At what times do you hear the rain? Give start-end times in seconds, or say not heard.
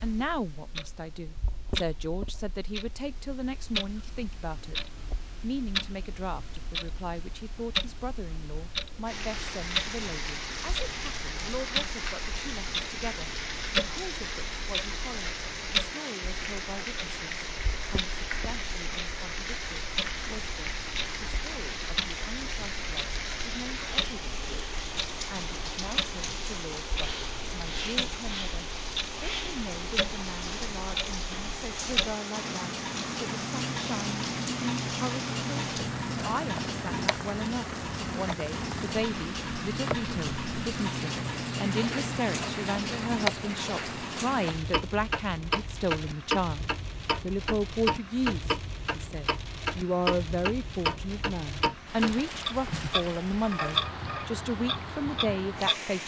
9.1-56.0.